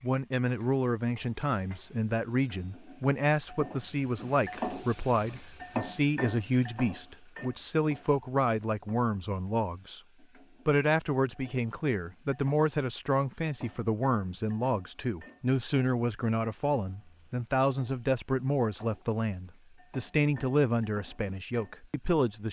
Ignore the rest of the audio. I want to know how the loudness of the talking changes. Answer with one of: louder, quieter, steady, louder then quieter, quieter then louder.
steady.